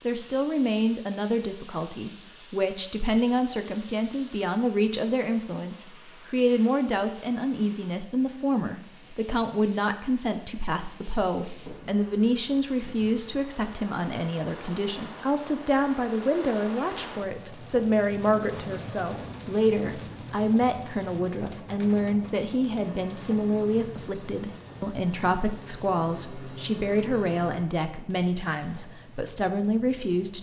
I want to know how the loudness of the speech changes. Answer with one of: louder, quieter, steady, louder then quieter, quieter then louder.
steady.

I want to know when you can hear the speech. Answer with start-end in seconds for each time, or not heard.
0.1-30.3.